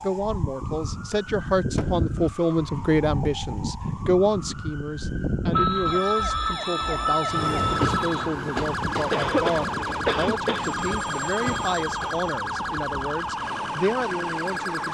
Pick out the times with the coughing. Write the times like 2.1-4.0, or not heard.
9.1-10.7.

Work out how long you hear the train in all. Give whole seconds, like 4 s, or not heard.
7 s.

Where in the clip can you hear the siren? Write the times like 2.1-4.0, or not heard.
0.0-14.8.